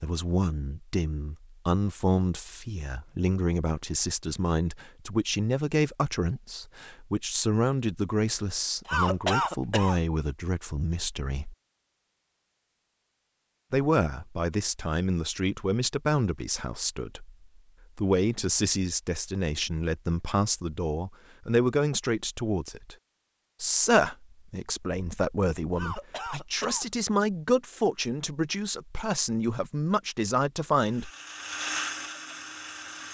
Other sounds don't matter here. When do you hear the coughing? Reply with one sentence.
The coughing can be heard from 8.8 to 10.0 s and from 25.8 to 26.9 s.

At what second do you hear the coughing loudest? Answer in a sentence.
The volume of the coughing peaks at 9 seconds.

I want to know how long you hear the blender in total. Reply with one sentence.
You can hear the blender for 2 seconds altogether.